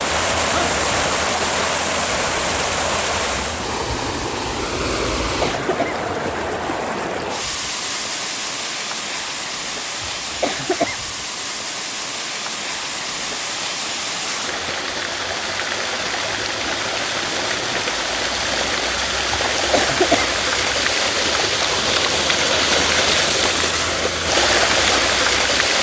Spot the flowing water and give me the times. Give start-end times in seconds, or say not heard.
0.0-25.7.